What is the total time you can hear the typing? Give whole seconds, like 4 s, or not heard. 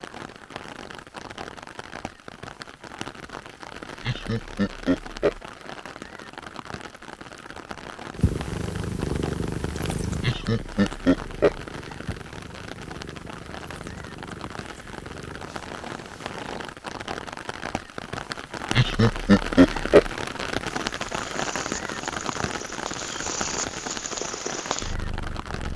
not heard.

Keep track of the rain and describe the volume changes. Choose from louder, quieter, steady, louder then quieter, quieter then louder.
louder.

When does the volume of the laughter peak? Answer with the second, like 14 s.
19 s.